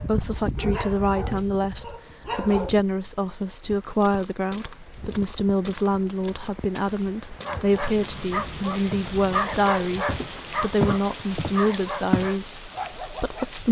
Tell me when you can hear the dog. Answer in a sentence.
You can hear the dog from 0.0 to 2.8 s and from 7.4 to 13.6 s.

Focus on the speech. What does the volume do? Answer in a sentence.
The volume of the speech stays about the same.